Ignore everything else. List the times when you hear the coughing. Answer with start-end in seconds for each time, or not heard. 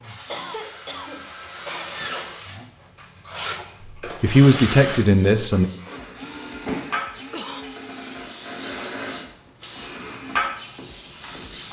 0.3-1.9, 6.0-7.7.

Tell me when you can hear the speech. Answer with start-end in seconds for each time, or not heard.
4.2-5.7.